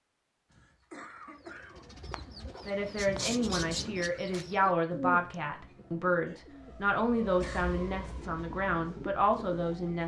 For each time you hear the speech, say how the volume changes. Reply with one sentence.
The speech can be heard from 2.6 to 10.0 s, at a steady volume.